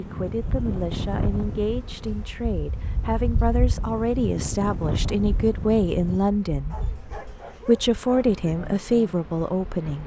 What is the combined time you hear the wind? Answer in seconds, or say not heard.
6 s.